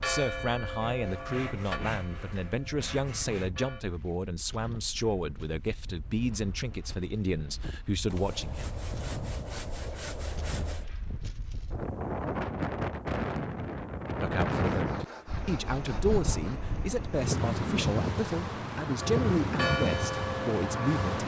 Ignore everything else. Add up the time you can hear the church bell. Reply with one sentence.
The church bell can be heard for 6 seconds in total.